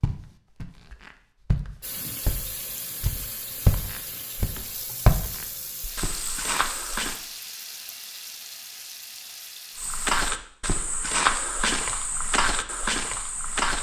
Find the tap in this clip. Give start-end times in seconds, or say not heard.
1.8-10.2.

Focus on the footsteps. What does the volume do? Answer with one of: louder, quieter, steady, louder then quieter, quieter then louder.
louder.